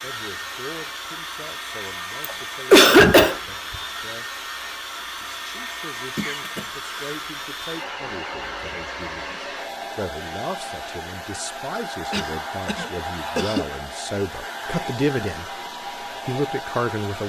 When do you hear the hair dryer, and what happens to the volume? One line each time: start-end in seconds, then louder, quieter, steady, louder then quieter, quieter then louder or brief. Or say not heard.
0.0-17.2 steady.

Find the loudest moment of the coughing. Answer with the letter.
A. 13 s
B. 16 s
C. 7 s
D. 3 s
D.